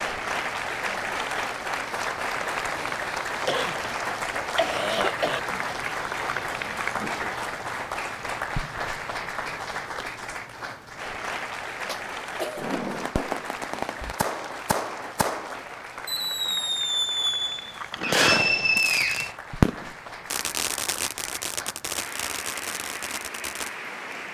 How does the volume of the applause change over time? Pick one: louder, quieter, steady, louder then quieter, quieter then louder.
quieter.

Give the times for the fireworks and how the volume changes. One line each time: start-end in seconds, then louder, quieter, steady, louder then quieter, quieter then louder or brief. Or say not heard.
12.6-23.7 louder then quieter.